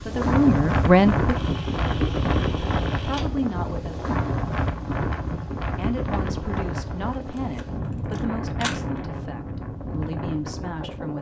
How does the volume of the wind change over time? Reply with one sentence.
The volume of the wind goes down.